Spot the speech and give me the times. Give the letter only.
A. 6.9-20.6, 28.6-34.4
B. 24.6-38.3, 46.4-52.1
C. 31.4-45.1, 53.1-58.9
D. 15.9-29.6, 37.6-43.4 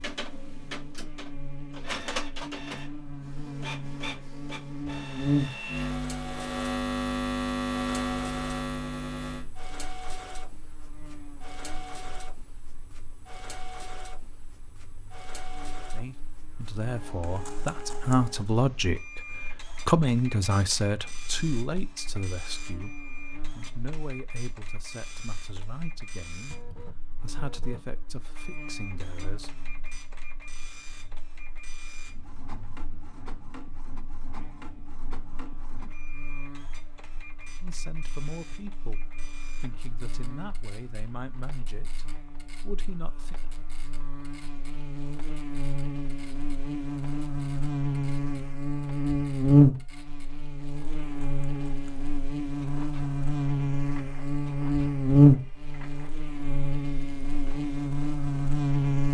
D.